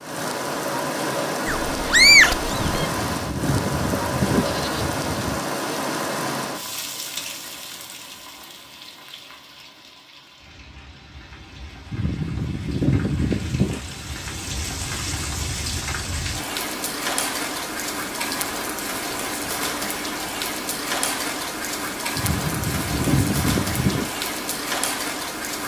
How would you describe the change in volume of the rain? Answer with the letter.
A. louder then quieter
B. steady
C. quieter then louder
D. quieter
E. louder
C.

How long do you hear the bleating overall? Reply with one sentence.
The bleating can be heard for 7 seconds in total.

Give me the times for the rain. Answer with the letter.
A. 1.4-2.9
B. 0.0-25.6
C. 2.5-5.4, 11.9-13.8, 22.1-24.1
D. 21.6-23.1
B.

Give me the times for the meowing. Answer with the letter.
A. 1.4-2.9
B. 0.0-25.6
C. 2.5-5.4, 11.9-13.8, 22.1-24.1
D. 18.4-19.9
A.